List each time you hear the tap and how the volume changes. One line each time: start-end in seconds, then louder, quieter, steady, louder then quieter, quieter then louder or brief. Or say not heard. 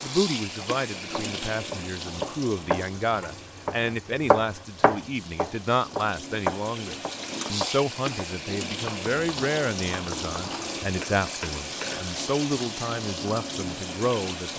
0.0-14.5 quieter then louder.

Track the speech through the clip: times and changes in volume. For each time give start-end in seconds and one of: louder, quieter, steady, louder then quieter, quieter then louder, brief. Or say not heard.
0.0-14.5 steady.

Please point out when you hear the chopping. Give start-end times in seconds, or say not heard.
0.6-12.0.